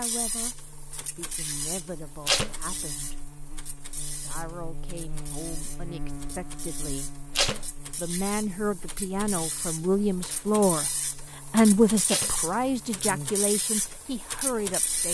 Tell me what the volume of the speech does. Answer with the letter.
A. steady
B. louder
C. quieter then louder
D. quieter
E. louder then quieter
E.